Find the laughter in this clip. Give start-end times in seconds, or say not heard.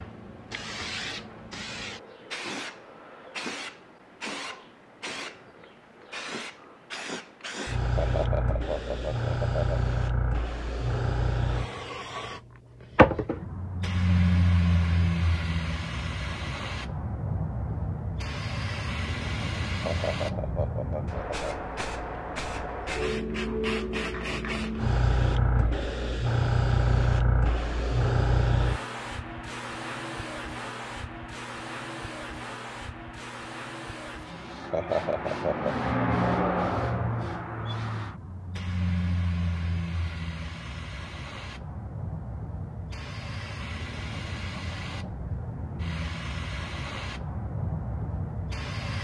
8.0-9.8, 19.9-21.4, 34.7-35.8.